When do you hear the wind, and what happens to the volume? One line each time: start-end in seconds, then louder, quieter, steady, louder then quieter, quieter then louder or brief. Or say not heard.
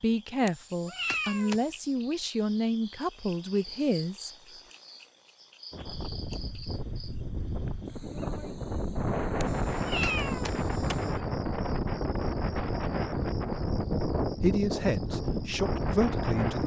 5.7-16.6 louder.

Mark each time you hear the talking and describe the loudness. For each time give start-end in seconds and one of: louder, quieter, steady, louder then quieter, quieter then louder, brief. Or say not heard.
0.0-4.3 steady
14.4-16.6 brief.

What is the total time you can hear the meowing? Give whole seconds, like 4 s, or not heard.
3 s.